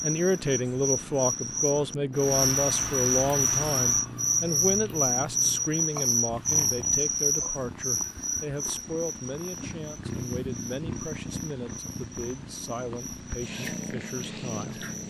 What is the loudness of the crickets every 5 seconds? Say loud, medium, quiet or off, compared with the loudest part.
loud, loud, quiet.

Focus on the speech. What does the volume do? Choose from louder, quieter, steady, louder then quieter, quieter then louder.
quieter.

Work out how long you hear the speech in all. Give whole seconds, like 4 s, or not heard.
15 s.